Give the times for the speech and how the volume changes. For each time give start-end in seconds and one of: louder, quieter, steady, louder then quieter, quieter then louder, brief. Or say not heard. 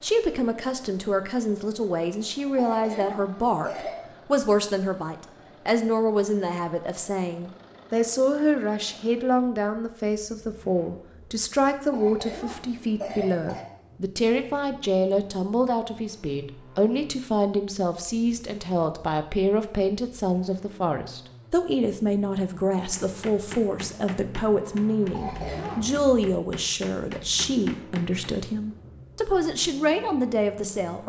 0.0-31.0 steady.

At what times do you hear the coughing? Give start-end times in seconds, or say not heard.
2.5-4.0, 11.9-13.7, 25.1-26.0.